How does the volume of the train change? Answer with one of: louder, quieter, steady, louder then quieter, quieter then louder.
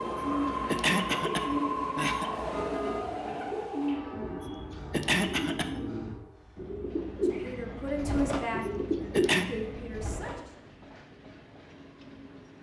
quieter.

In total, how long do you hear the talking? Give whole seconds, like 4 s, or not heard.
3 s.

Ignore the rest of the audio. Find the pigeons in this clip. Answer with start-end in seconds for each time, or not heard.
0.0-10.3.